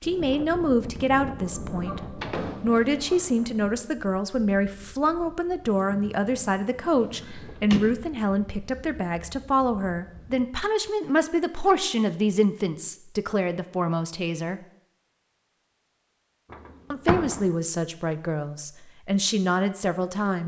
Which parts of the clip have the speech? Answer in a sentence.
You can hear the speech from 0.0 to 14.6 s and from 16.9 to 20.4 s.